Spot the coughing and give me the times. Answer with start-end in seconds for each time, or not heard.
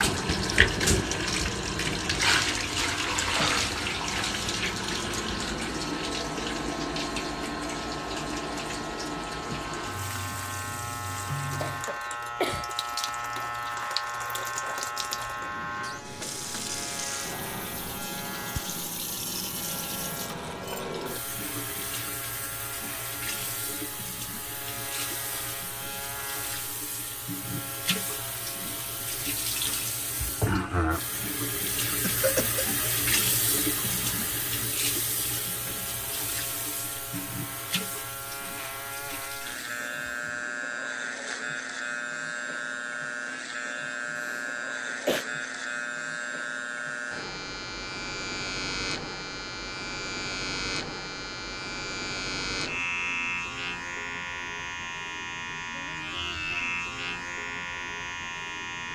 11.6-12.8, 32.0-32.6, 44.1-45.2.